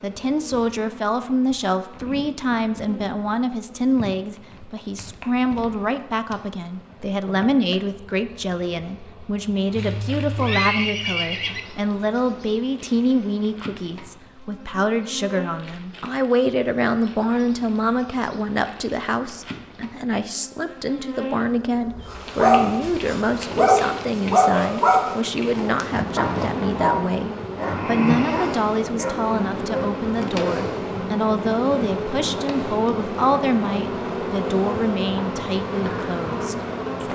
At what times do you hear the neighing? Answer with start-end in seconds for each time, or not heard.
9.8-11.6.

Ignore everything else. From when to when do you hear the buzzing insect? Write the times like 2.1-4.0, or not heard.
0.0-37.1.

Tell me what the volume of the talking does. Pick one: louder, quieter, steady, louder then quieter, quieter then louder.
steady.